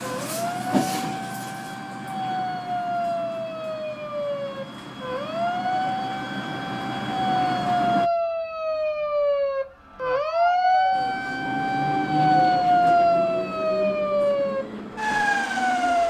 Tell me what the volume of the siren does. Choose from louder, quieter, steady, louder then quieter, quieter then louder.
louder.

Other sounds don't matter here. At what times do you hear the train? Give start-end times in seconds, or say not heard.
0.0-8.1, 10.9-16.0.